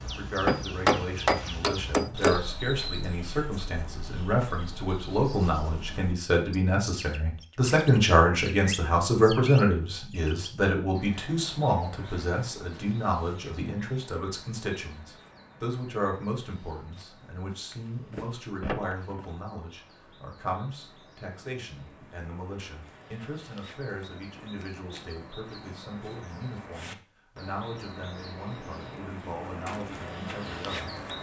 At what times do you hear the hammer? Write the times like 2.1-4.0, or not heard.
0.5-2.4.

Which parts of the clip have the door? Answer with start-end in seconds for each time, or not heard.
17.7-19.3.